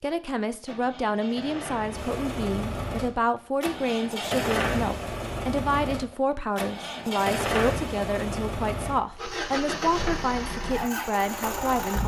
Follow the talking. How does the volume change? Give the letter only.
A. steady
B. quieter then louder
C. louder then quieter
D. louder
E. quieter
A.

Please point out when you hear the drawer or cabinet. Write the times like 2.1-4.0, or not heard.
not heard.